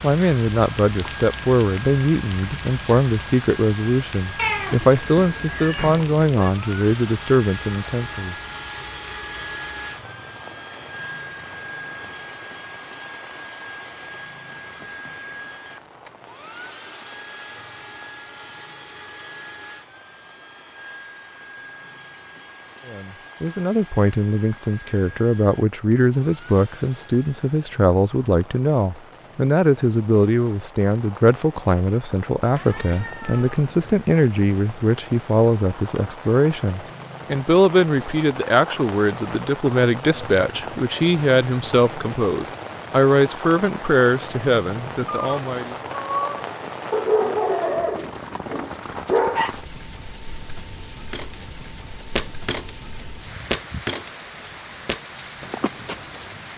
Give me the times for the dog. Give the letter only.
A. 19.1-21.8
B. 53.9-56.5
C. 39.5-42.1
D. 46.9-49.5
D.